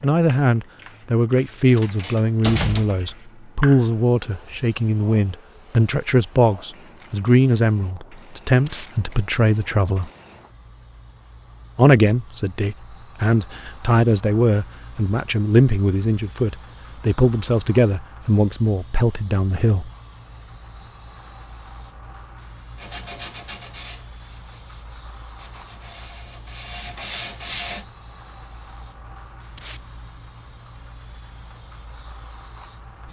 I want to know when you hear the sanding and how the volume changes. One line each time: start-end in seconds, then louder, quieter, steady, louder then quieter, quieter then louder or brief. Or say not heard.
22.8-27.9 quieter then louder.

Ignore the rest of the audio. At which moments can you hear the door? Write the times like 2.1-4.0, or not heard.
1.6-3.1.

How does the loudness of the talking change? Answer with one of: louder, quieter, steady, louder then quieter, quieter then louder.
steady.